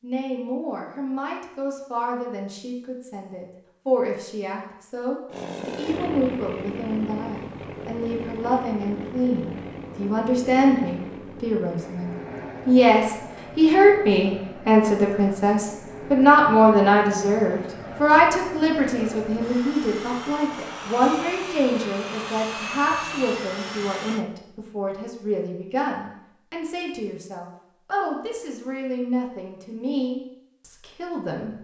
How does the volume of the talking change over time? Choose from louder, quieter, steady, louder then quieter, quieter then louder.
louder then quieter.